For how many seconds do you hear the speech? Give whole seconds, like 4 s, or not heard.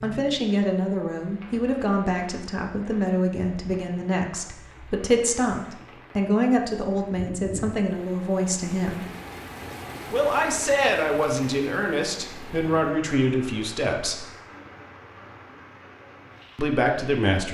14 s.